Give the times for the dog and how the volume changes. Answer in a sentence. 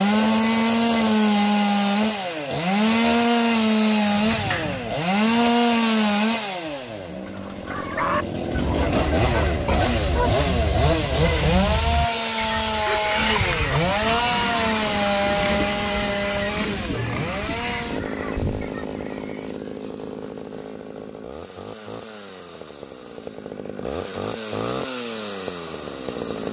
The dog can't be heard in this clip.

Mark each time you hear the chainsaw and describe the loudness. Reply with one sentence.
You can hear the chainsaw from 0.0 to 26.4 s, getting quieter.